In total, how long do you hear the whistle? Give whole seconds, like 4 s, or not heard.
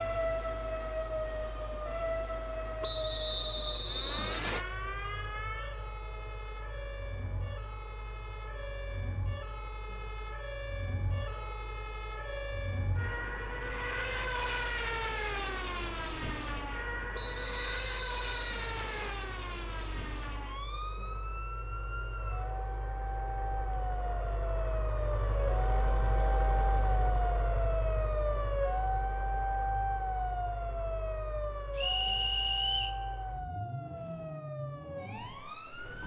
5 s.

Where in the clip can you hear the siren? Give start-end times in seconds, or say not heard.
0.0-36.0.